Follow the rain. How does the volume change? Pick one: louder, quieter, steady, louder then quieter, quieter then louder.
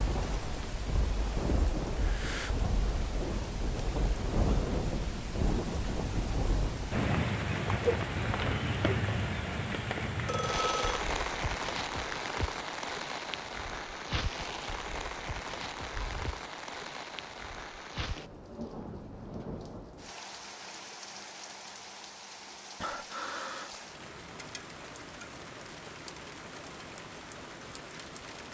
quieter.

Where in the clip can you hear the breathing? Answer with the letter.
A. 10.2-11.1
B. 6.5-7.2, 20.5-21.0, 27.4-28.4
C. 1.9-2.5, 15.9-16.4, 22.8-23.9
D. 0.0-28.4
C.